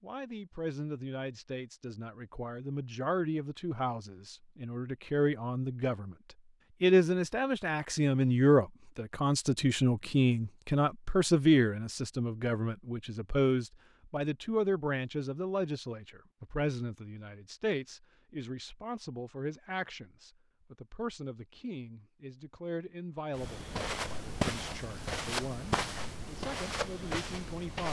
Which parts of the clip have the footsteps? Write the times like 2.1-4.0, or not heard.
23.4-27.8.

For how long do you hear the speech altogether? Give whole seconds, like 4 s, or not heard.
27 s.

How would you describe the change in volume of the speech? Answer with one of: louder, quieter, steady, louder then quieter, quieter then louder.
louder then quieter.